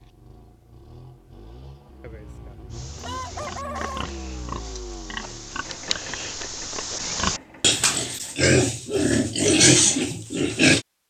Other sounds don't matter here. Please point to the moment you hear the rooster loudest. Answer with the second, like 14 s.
4 s.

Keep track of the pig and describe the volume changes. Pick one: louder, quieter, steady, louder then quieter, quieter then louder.
louder.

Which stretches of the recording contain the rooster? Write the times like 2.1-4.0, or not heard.
2.0-4.0.